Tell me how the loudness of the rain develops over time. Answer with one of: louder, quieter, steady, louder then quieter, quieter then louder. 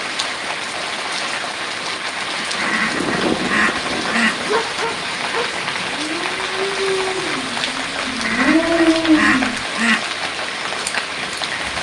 steady.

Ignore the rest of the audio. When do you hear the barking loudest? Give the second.
9 s.